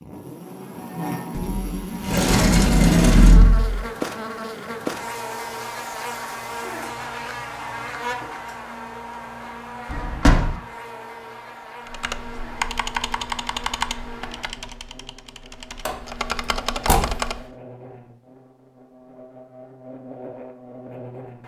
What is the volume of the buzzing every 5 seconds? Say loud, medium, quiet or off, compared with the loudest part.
loud, loud, medium, quiet, medium.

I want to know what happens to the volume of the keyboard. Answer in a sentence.
The loudness of the keyboard goes down, then up.